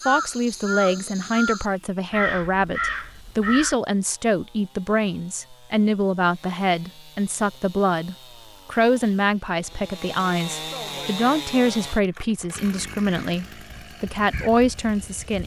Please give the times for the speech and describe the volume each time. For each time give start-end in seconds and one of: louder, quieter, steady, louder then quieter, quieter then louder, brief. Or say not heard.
0.1-15.4 steady.